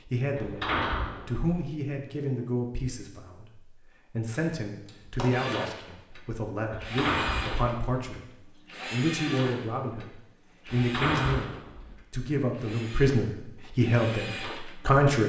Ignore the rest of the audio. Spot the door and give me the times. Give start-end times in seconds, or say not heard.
0.3-1.6, 6.7-7.7, 10.8-11.9.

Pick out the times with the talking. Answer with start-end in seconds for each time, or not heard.
0.1-15.2.